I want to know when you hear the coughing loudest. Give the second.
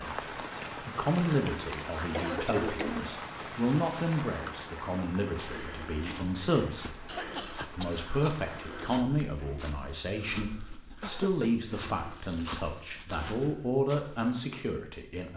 3 s.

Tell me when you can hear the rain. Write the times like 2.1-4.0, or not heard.
0.0-8.7.